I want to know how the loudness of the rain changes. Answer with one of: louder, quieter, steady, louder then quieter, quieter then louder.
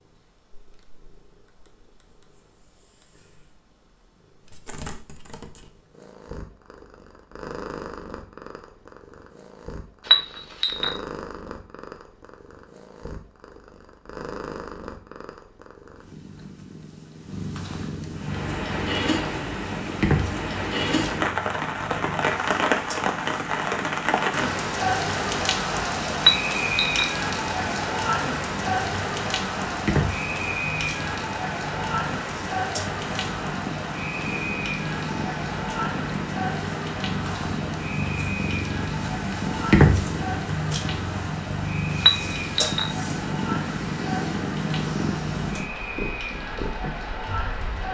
quieter.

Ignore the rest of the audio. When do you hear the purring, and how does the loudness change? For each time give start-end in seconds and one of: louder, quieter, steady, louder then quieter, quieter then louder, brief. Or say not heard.
0.0-47.5 louder.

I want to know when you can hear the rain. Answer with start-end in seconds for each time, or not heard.
18.1-47.8.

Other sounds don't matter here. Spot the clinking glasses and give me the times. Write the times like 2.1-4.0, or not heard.
10.1-10.9, 26.2-27.1, 42.0-42.9.